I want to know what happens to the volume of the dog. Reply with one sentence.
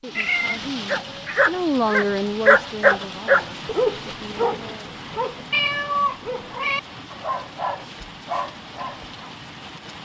The loudness of the dog goes down.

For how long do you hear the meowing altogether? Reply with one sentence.
The meowing can be heard for 3 seconds in total.